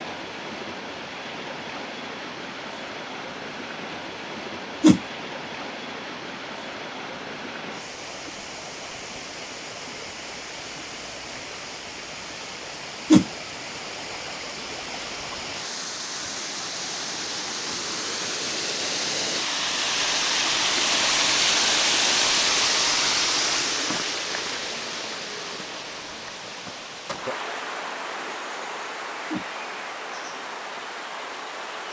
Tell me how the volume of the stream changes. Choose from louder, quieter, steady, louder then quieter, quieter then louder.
louder then quieter.